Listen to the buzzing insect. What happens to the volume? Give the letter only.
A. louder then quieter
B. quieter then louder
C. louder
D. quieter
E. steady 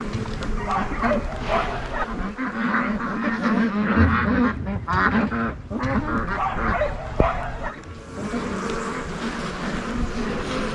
B.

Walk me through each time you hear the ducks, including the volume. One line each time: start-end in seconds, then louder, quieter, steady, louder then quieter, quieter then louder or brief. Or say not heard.
0.0-10.6 louder then quieter.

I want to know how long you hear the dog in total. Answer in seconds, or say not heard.
4 s.